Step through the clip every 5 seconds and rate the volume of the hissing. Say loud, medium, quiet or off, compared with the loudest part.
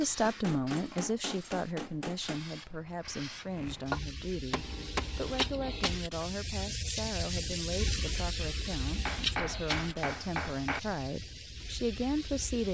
medium, loud, medium.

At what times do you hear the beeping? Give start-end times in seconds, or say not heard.
not heard.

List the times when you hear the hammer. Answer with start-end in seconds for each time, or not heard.
0.2-2.4, 4.5-6.0, 8.9-10.8.